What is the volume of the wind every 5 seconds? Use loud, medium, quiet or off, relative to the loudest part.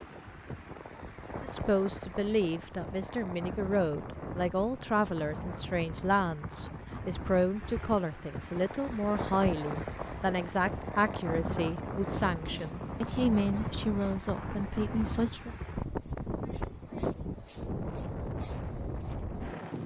medium, loud, loud, loud.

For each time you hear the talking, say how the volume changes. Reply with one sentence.
You can hear the talking from 1.4 to 15.6 s, at a steady volume.